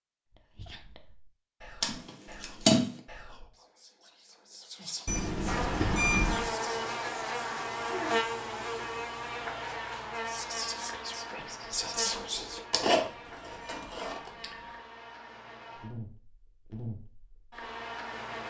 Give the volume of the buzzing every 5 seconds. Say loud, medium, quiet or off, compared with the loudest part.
off, loud, medium, medium.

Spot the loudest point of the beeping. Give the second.
6 s.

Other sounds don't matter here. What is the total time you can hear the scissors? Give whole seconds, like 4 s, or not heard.
3 s.